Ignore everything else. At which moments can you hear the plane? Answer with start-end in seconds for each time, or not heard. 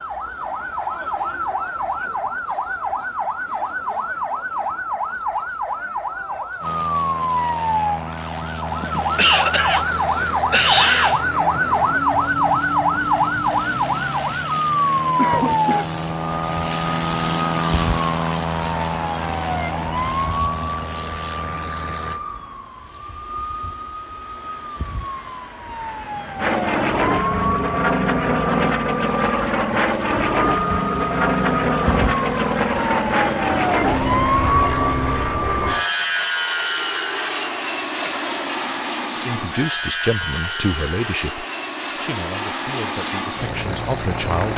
6.6-22.2, 26.4-44.5.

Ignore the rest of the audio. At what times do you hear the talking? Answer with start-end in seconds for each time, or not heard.
39.1-44.5.